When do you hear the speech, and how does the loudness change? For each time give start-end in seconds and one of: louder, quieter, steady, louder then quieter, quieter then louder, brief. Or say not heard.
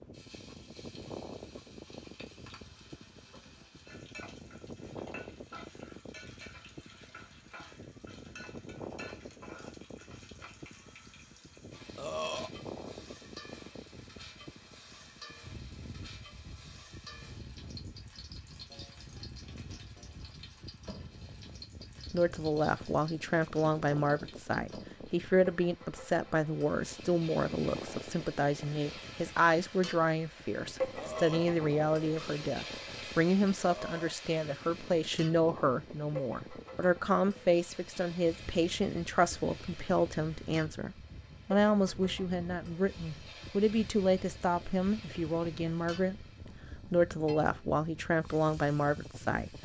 22.1-49.5 steady.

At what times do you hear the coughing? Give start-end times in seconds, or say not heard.
not heard.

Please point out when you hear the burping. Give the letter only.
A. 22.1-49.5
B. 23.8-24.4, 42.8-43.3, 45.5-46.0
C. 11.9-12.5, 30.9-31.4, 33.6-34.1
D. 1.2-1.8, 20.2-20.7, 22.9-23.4
C.